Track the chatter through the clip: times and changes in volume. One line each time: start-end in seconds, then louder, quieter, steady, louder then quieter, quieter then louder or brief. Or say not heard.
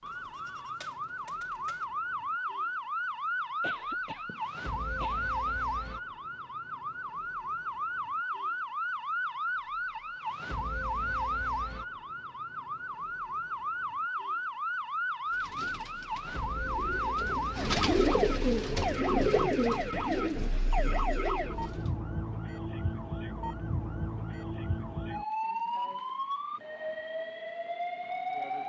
not heard.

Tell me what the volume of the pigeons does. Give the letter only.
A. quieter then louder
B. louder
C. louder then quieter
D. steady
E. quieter
C.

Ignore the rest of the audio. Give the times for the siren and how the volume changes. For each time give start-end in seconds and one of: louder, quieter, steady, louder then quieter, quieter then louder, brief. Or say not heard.
0.0-28.6 steady.